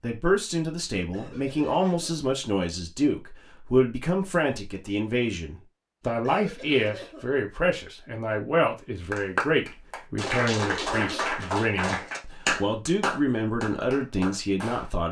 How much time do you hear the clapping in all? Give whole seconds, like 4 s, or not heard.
6 s.